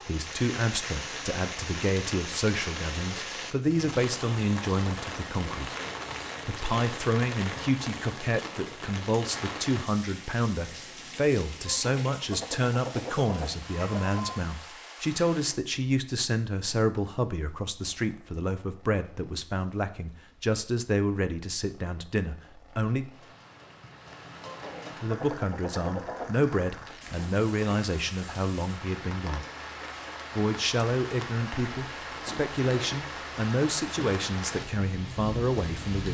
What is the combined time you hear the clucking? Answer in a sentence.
You can hear the clucking for 5 seconds altogether.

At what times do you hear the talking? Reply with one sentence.
The talking can be heard from 0.1 to 5.8 s, from 6.5 to 23.1 s, from 25.0 to 29.4 s and from 30.4 to 36.0 s.